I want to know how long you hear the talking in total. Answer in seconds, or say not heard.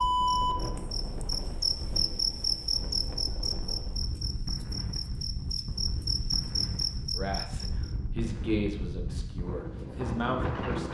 4 s.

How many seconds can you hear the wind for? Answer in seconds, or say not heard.
11 s.